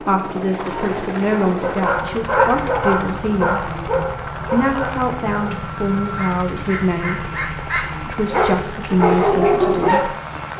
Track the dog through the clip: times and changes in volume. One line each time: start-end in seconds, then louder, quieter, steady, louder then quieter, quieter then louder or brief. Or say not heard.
0.6-10.5 quieter then louder.